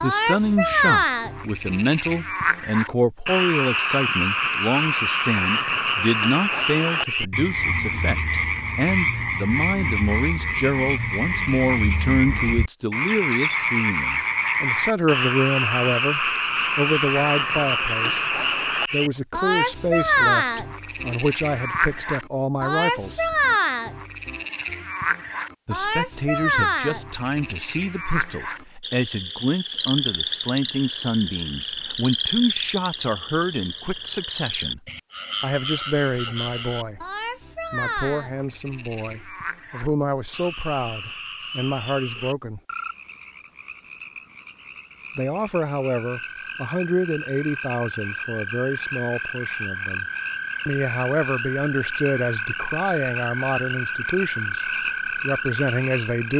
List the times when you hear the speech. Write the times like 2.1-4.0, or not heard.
0.0-23.4, 25.6-34.8, 35.4-37.0, 37.7-42.6, 45.1-50.0, 50.6-56.3.